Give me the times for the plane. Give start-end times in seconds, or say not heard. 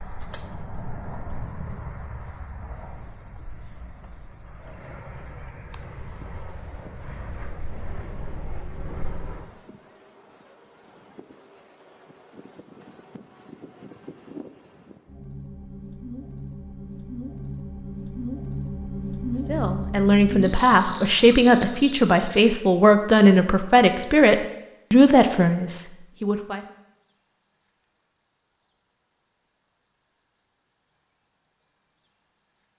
0.0-9.6.